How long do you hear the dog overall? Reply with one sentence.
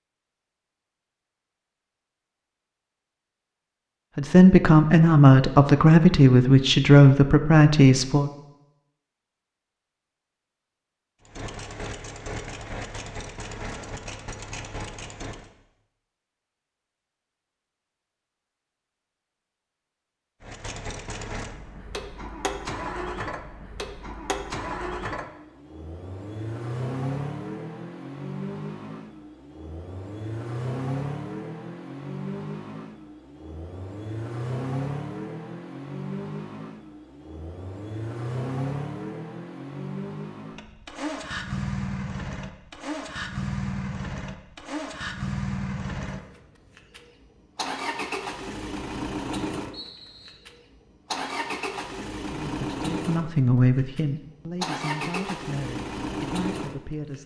The dog can't be heard in this clip.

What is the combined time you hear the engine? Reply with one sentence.
You can hear the engine for 41 seconds altogether.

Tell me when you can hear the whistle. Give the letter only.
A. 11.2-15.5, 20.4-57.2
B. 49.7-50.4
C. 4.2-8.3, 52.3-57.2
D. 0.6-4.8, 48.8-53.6
B.